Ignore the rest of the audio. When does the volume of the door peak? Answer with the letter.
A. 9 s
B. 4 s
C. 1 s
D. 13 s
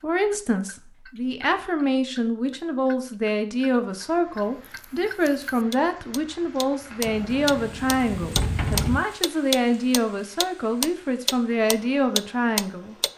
A.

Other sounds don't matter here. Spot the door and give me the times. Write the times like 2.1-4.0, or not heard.
7.0-9.0.